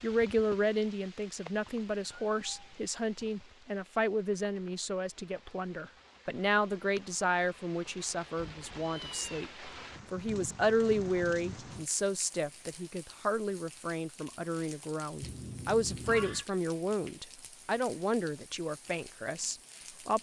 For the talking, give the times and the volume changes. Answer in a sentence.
The talking can be heard from 0.0 to 20.1 s, at a steady volume.